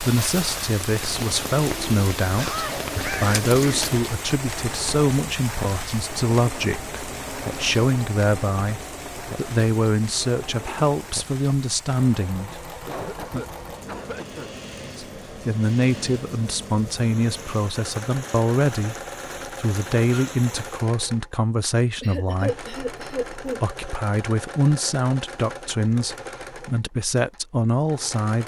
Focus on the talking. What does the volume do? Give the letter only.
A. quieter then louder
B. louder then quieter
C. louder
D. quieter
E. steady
E.